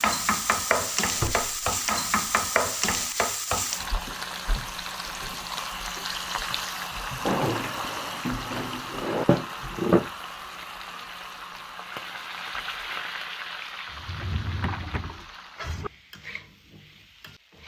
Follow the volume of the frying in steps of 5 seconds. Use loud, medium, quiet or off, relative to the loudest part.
loud, loud, medium, quiet.